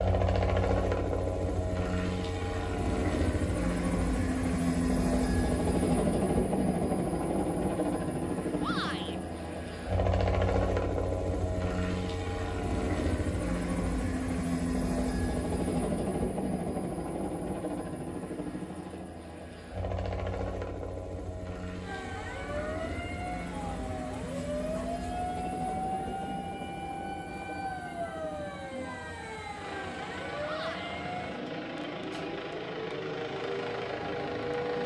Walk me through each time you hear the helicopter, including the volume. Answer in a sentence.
You can hear the helicopter from 0.0 to 34.8 s, getting quieter.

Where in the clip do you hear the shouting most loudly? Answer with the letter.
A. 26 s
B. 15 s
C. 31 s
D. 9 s
D.